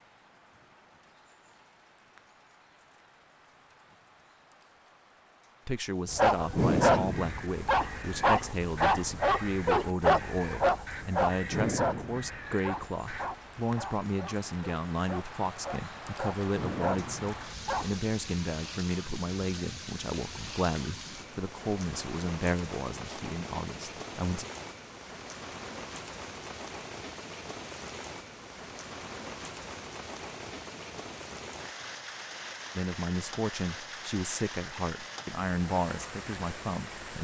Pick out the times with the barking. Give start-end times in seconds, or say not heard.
6.1-18.0.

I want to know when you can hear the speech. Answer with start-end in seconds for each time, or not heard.
5.7-24.4, 32.8-37.2.